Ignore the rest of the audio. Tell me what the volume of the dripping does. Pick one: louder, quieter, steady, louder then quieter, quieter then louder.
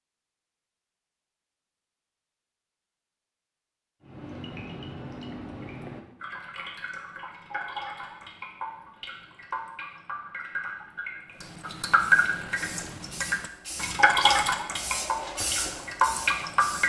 louder.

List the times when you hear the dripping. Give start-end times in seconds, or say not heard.
4.0-16.8.